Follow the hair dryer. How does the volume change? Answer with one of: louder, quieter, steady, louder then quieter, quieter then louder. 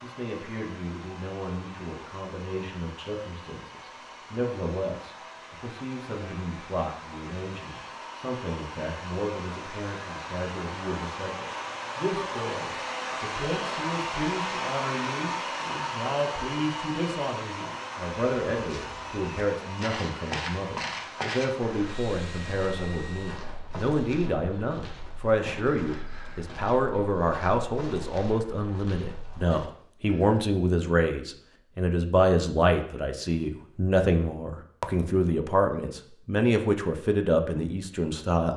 louder then quieter.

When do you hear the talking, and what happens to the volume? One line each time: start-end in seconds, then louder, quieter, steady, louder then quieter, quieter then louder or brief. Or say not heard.
0.0-38.5 louder.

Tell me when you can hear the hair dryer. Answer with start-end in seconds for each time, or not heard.
0.0-23.4.